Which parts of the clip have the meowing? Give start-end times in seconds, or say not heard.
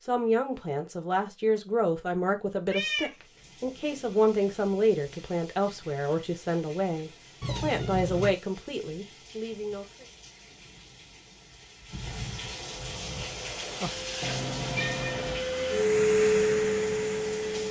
2.7-3.1, 7.4-8.3, 14.2-15.4.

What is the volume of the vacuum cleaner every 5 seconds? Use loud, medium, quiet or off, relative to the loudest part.
off, off, quiet, loud.